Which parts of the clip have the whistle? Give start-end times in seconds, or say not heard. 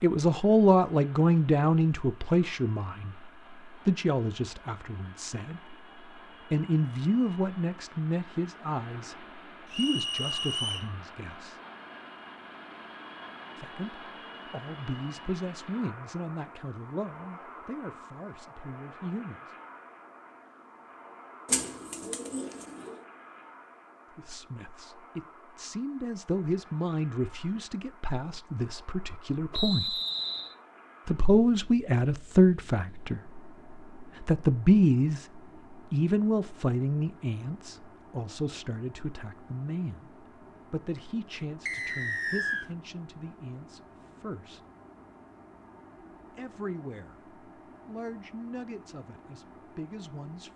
9.7-10.8, 29.5-30.6, 41.6-42.6.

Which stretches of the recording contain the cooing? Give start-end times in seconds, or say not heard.
21.4-23.0.